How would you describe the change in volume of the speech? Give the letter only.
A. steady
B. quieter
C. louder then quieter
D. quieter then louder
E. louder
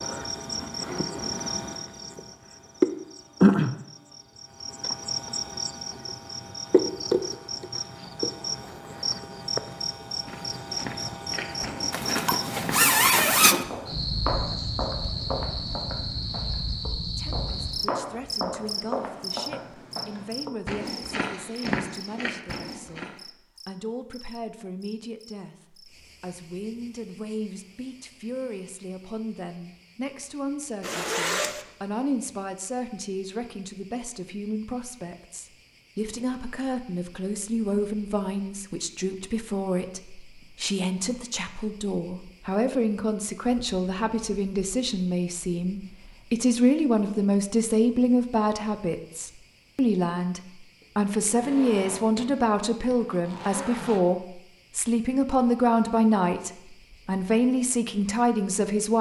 E.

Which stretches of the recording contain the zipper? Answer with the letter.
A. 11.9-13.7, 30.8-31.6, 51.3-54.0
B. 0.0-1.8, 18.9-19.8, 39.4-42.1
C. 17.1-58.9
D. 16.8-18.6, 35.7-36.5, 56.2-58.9
A.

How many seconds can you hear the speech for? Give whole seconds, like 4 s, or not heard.
42 s.